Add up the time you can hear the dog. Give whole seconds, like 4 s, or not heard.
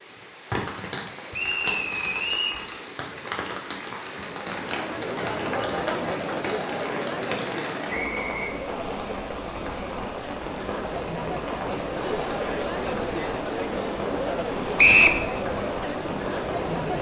not heard.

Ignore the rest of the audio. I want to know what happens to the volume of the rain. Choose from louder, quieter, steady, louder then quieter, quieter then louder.
steady.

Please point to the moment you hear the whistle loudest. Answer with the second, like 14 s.
15 s.